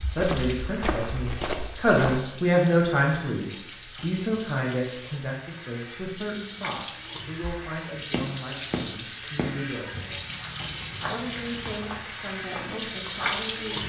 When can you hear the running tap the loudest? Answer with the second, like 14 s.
13 s.